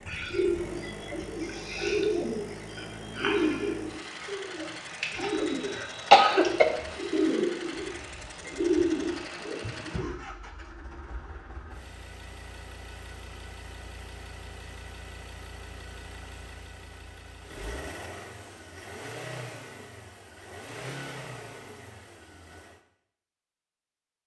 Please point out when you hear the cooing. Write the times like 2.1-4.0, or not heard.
0.1-10.1.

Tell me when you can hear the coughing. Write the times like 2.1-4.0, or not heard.
5.4-6.7.